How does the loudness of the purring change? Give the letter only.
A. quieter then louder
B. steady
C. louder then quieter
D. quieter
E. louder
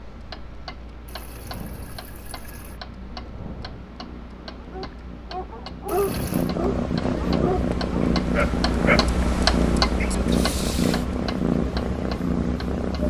E.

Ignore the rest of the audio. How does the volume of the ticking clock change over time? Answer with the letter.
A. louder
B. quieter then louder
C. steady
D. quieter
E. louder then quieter
E.